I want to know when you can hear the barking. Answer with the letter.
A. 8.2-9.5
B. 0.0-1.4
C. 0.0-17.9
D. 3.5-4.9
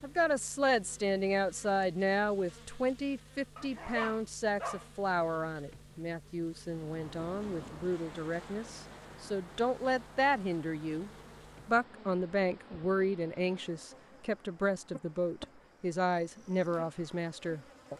D.